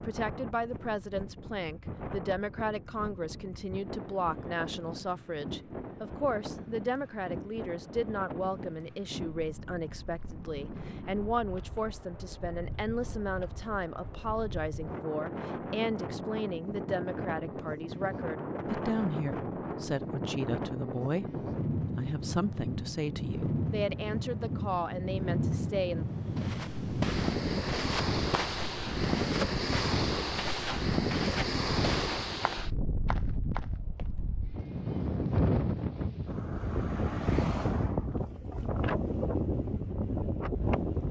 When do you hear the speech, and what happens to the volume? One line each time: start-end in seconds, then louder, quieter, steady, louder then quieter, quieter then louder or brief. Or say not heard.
0.0-26.1 steady.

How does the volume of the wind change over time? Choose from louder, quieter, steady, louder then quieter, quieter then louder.
louder.